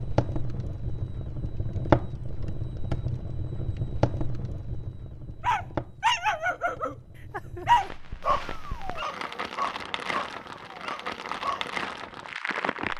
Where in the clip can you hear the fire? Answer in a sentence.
The fire can be heard from 0.0 to 12.9 s.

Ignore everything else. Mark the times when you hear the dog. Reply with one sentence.
The dog can be heard from 5.4 to 11.7 s.